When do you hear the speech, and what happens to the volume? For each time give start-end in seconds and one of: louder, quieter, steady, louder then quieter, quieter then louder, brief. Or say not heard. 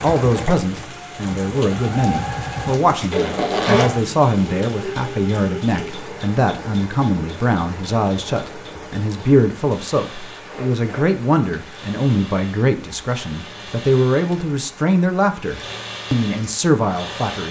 0.0-17.4 steady.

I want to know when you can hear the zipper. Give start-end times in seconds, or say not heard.
3.1-3.9, 10.4-11.1.